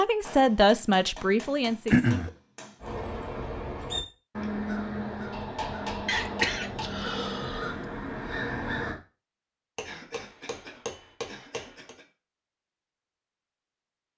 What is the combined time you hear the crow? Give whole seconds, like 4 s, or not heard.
6 s.